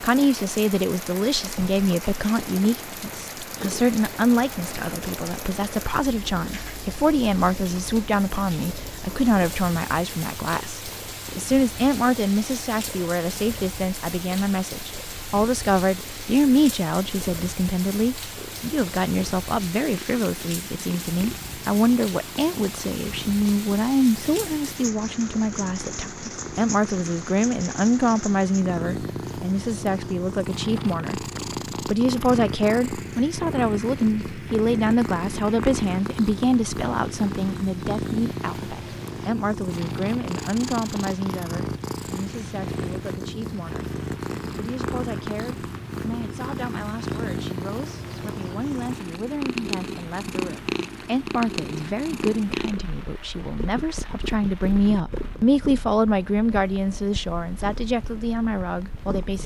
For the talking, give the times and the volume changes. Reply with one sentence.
The talking can be heard from 0.0 to 31.2 s, at a steady volume; and from 31.9 to 59.4 s, getting quieter then louder.